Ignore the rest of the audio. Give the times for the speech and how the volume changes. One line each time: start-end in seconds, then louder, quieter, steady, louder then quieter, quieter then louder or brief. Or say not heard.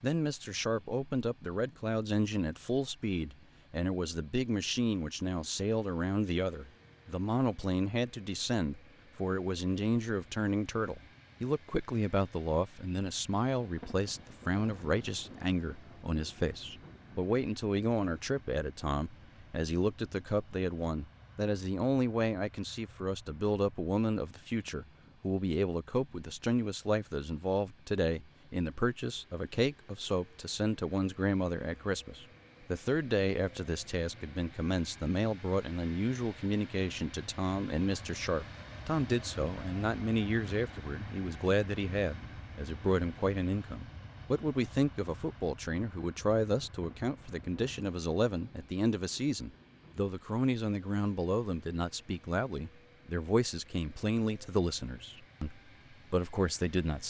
0.0-57.0 steady.